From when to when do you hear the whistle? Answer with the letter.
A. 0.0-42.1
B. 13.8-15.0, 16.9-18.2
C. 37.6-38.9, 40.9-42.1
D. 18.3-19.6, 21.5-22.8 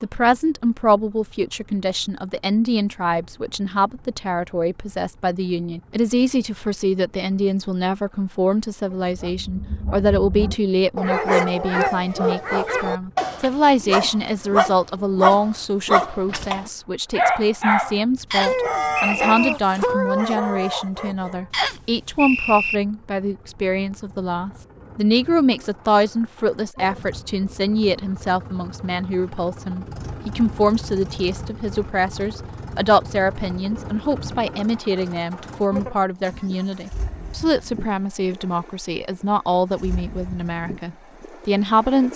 D.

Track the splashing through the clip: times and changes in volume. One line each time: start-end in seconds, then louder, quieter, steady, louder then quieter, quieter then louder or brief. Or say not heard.
not heard.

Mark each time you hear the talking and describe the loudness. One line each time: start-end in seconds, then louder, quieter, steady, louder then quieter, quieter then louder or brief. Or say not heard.
0.0-42.1 steady.